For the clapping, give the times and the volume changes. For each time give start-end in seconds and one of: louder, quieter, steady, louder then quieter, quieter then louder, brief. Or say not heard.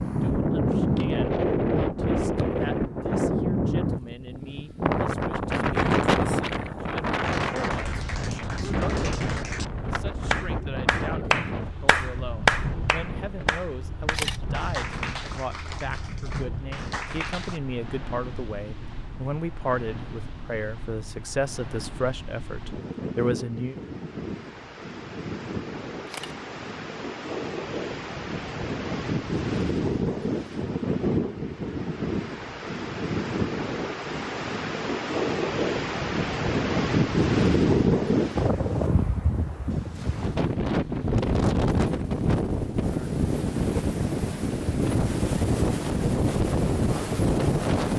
7.2-17.6 louder then quieter.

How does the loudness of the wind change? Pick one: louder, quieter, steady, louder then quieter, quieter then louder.
quieter then louder.